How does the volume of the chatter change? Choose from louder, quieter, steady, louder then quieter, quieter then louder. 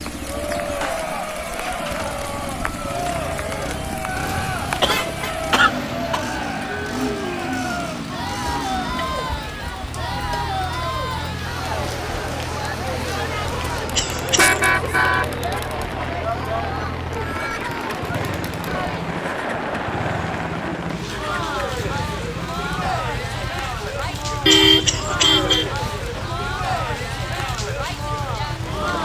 steady.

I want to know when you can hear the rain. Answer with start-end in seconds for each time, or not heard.
0.0-28.9.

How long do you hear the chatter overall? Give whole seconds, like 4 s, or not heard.
29 s.